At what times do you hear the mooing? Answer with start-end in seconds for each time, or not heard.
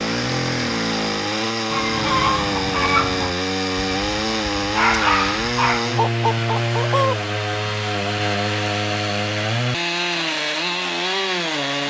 not heard.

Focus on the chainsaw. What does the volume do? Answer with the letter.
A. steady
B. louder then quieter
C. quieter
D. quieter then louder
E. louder
A.